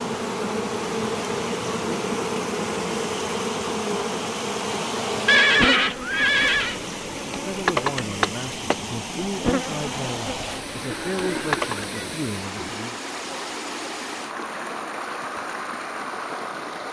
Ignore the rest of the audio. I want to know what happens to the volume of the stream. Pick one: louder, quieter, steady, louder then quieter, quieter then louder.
steady.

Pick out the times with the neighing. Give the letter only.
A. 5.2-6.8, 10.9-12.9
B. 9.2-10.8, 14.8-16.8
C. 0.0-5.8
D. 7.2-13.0
A.